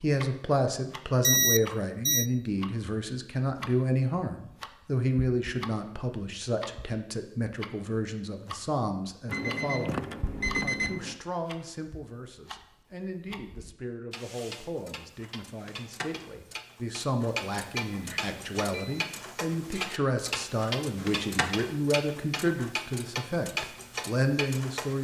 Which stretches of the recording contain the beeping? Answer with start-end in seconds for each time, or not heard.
1.2-2.2, 9.2-11.2, 17.8-19.1.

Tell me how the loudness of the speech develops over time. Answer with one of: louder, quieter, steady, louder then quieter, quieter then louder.
quieter then louder.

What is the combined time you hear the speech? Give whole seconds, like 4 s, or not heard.
25 s.